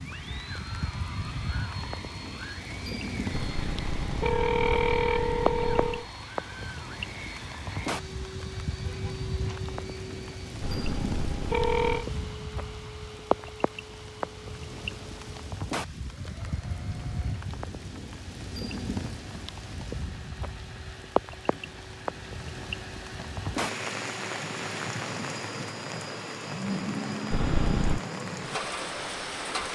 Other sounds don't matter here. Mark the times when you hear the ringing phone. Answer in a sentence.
The ringing phone can be heard from 3.3 to 6.0 s, from 10.6 to 12.1 s and from 27.3 to 28.0 s.